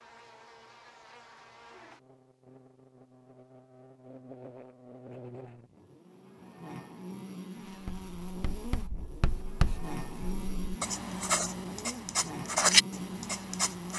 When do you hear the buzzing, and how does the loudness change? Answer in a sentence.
You can hear the buzzing from 0.0 to 13.9 s, getting louder.